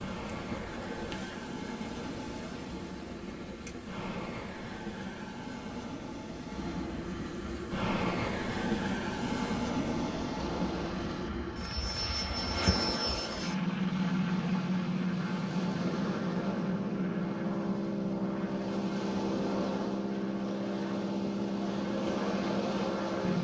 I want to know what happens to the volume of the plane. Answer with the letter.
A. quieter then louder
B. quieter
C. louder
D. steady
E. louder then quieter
C.